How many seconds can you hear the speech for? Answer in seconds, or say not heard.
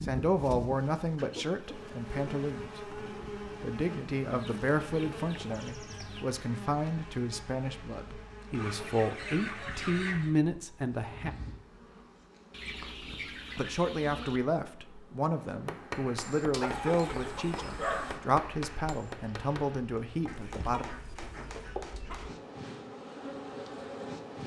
18 s.